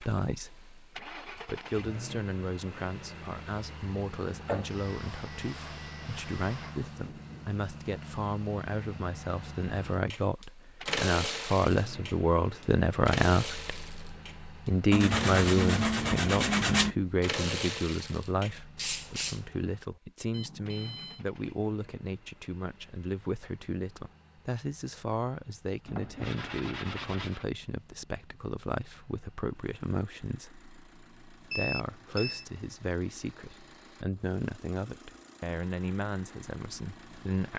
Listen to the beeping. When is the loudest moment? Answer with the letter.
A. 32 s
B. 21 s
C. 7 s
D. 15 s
A.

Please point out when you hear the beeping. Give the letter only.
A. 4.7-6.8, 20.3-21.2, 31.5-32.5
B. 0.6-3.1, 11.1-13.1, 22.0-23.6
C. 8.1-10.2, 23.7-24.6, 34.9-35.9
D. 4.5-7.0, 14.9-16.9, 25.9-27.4
A.